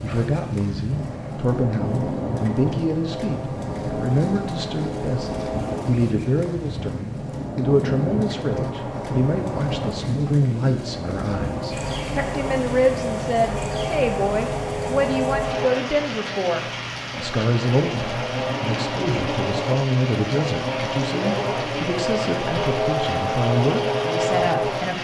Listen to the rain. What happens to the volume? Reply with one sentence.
The loudness of the rain stays about the same.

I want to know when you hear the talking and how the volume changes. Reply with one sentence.
The talking can be heard from 0.0 to 24.9 s, at a steady volume.